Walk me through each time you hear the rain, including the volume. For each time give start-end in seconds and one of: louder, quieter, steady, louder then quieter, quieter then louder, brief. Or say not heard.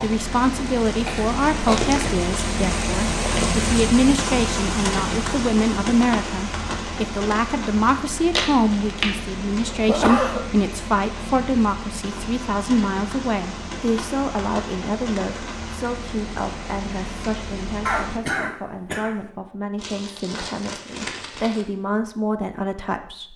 0.0-18.2 quieter.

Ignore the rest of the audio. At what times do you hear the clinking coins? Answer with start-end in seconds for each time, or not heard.
not heard.